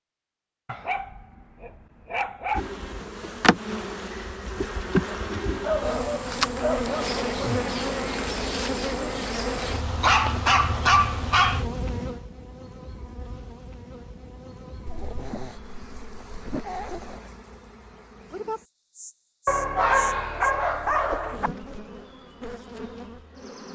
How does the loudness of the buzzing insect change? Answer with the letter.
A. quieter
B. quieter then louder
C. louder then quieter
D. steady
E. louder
A.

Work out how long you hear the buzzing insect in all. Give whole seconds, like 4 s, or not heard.
21 s.